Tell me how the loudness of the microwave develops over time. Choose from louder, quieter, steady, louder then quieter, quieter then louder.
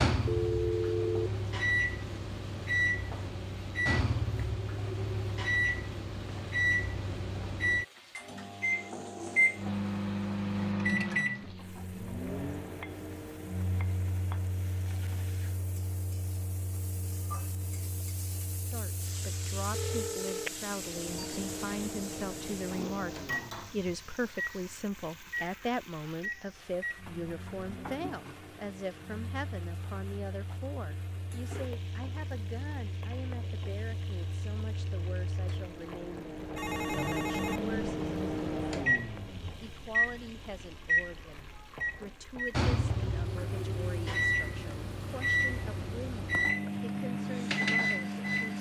quieter then louder.